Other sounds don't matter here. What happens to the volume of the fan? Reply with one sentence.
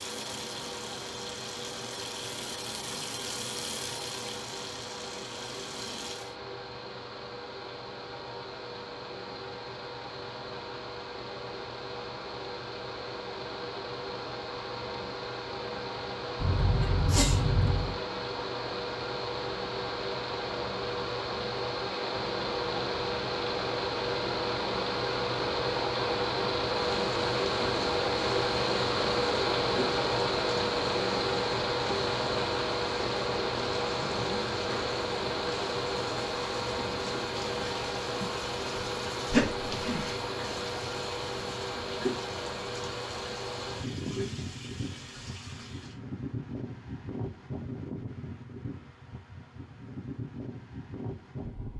The volume of the fan goes up, then down.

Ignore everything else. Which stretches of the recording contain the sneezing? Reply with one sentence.
You can hear the sneezing from 16.4 to 17.9 s and from 39.3 to 40.1 s.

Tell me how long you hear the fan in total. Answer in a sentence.
You can hear the fan for 52 seconds altogether.